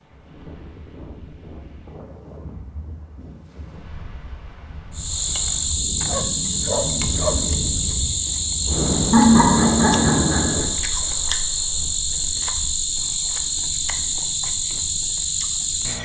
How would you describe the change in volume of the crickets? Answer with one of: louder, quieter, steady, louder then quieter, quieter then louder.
steady.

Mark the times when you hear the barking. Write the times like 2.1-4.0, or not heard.
6.0-7.7.